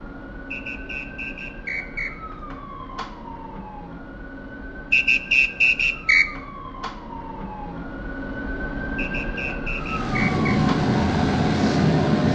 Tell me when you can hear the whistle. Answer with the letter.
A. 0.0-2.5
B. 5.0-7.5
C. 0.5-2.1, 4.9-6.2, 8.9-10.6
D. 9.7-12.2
C.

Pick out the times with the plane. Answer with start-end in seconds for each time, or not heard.
9.7-12.2.